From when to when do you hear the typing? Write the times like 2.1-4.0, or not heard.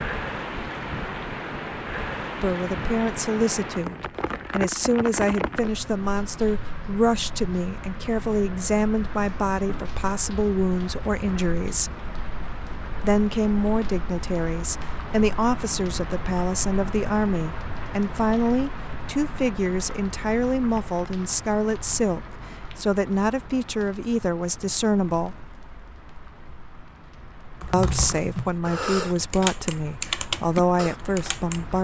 27.6-31.8.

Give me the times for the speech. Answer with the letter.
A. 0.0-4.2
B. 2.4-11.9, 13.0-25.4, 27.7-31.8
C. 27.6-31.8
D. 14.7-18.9
B.